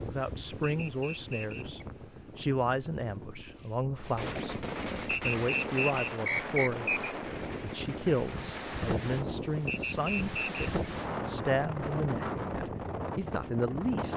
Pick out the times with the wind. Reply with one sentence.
You can hear the wind from 0.0 to 14.1 s.